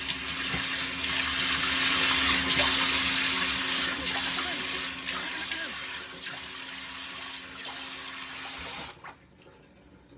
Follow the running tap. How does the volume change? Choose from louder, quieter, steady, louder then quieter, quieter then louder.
quieter.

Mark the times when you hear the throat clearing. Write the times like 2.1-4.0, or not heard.
3.8-5.8.